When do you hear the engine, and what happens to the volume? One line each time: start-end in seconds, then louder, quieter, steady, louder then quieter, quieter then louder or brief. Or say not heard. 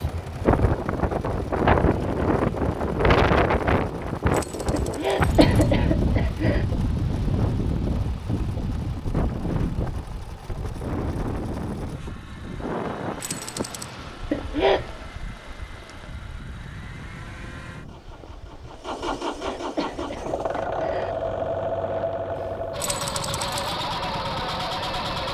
0.0-25.2 louder.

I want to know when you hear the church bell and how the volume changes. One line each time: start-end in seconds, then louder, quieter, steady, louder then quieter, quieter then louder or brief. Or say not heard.
not heard.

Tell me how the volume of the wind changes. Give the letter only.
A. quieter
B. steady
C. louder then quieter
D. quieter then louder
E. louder
A.